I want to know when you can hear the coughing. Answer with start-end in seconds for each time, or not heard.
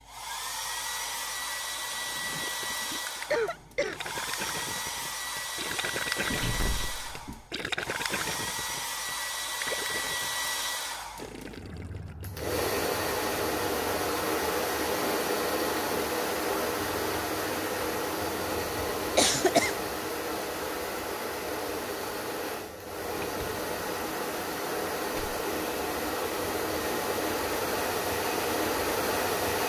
3.3-4.2, 18.8-19.8.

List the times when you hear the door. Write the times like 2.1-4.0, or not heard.
6.3-7.5, 23.1-25.4.